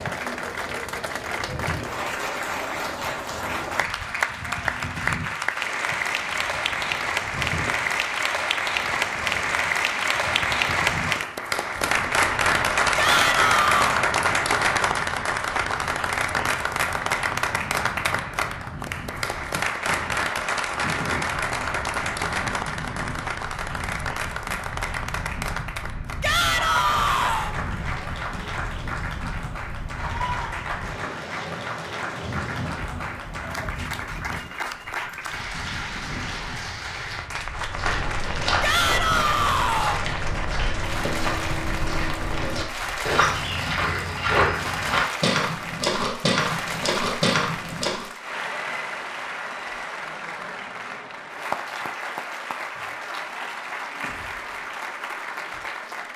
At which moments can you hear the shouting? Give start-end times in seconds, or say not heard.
12.9-14.0, 26.2-27.6, 38.6-40.0.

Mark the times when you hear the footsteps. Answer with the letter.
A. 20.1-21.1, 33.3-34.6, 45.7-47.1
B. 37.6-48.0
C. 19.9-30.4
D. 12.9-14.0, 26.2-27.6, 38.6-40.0
B.